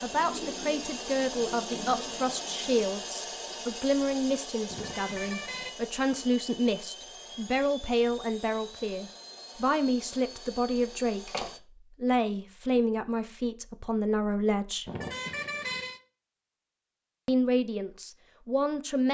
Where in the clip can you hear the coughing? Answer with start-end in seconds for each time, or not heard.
not heard.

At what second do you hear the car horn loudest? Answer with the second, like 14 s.
16 s.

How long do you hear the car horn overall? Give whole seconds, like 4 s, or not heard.
2 s.